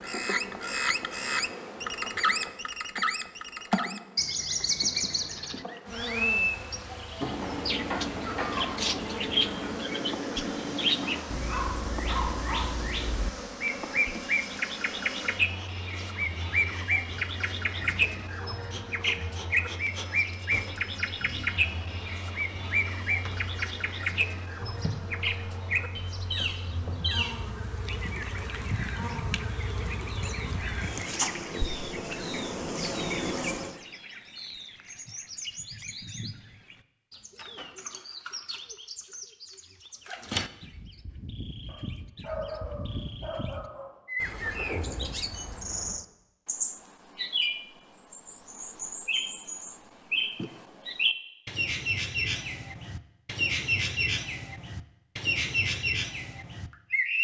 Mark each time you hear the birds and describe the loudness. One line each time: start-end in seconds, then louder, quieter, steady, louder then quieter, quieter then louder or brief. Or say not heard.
0.0-57.1 quieter then louder.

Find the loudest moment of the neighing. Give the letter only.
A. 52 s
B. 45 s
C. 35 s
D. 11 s
B.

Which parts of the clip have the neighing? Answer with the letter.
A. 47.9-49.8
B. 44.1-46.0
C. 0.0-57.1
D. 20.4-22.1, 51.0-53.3
B.